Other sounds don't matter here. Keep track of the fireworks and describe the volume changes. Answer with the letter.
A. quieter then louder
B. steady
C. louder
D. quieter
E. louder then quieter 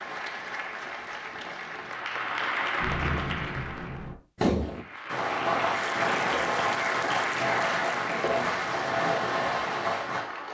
B.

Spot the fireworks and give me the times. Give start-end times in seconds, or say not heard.
2.8-10.2.